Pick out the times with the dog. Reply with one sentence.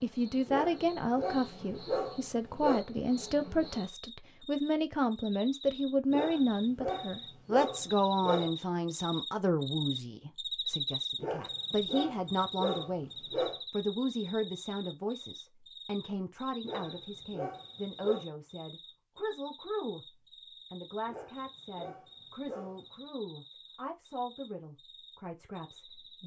The dog can be heard from 0.5 to 2.9 s, from 6.1 to 8.5 s, from 11.2 to 13.6 s, from 16.6 to 18.2 s and from 21.1 to 22.9 s.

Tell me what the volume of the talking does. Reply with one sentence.
The volume of the talking goes down.